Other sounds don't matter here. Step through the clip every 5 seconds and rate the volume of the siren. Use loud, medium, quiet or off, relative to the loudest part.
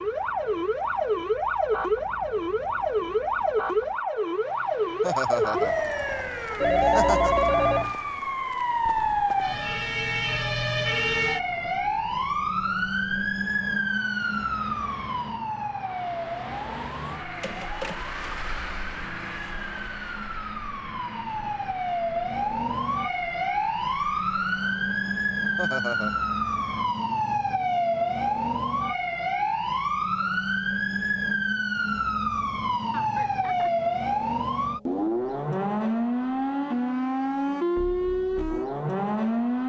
loud, loud, loud, medium, loud, loud, loud, loud.